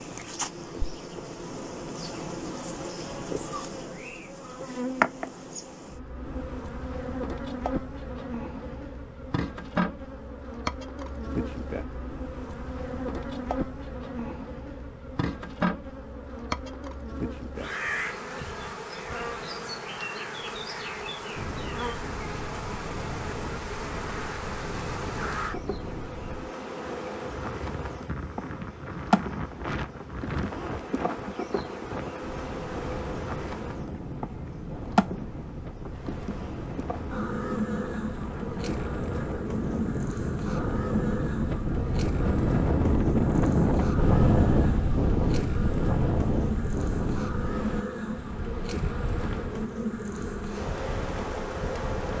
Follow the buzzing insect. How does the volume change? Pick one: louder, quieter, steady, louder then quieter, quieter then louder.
steady.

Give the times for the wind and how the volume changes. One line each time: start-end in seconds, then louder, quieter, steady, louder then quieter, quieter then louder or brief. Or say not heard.
21.4-52.1 louder then quieter.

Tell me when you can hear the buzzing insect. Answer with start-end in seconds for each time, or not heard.
0.0-52.1.